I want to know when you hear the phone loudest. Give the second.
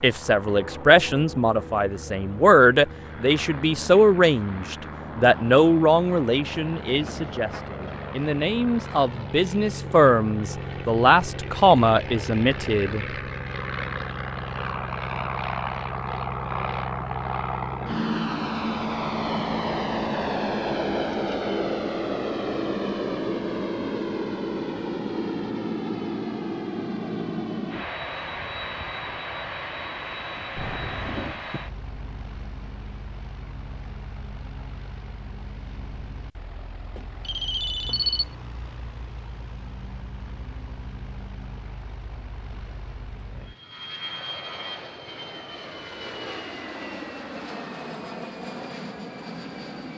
38 s.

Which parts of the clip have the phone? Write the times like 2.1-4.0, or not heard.
6.8-7.9, 30.6-31.4, 37.0-38.4.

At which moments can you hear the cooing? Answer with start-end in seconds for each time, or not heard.
not heard.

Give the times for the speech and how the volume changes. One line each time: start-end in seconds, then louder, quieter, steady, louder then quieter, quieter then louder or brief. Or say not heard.
0.0-13.1 steady.